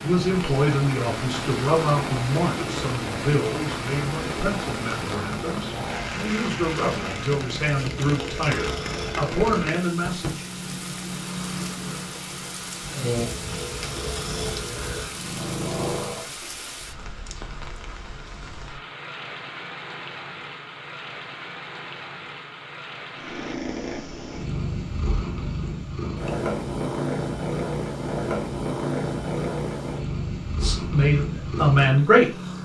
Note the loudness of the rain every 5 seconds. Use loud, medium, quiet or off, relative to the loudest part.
loud, loud, medium, medium, medium, off, off.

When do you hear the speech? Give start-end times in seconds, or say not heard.
0.0-10.4, 30.6-32.2.